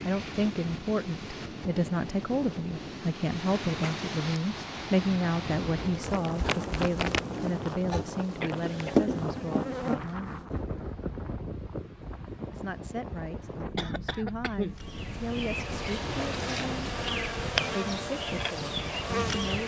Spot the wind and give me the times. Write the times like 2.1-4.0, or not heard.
0.0-19.6.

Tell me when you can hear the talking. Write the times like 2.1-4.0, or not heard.
0.0-10.5, 12.5-16.9, 17.8-19.6.